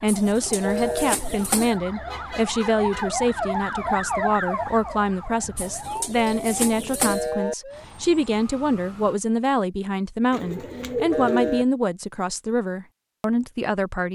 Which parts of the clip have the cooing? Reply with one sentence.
You can hear the cooing from 0.1 to 1.8 s, from 5.5 to 7.3 s and from 10.3 to 11.7 s.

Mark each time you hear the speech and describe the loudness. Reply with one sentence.
You can hear the speech from 0.0 to 14.0 s, at a steady volume.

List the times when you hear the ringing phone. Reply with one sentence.
You can hear the ringing phone from 0.6 to 1.1 s, from 7.0 to 7.5 s and from 11.1 to 11.7 s.